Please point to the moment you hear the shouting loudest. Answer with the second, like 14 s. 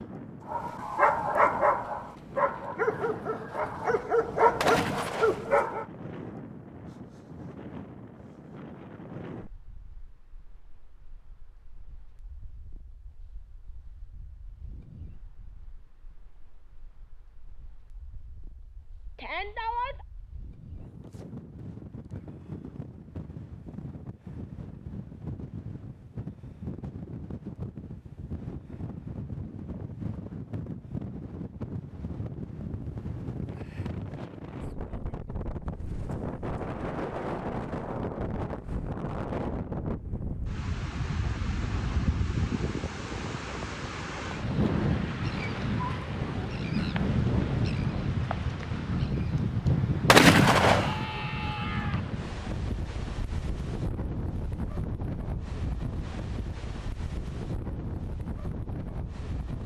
20 s.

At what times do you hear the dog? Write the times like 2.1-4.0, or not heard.
0.5-5.8.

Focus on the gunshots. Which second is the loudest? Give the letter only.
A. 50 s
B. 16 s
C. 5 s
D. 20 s
A.